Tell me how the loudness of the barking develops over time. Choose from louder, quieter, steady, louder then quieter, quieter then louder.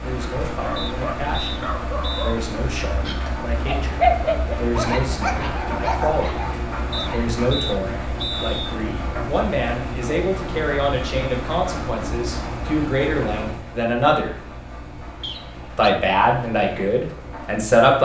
louder then quieter.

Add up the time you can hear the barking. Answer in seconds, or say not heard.
7 s.